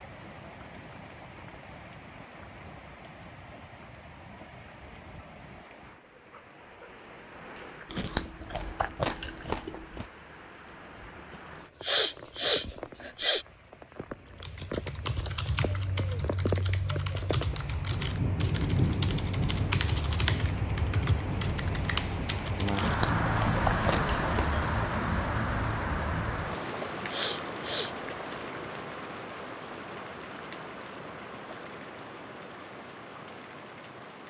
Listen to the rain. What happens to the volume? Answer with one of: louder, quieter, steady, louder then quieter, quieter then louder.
louder then quieter.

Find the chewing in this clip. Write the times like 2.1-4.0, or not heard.
7.8-10.1, 22.8-24.6.